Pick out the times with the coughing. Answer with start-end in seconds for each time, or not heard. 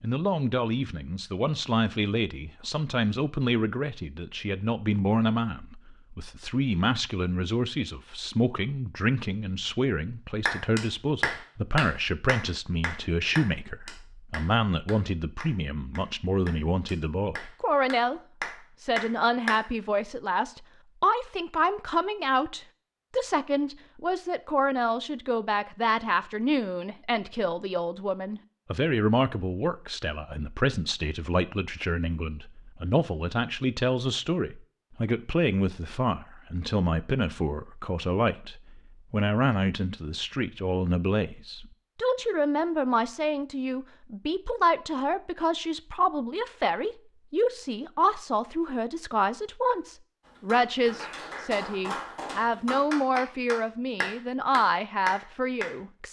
not heard.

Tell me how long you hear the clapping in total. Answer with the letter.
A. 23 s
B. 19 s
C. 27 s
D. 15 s
D.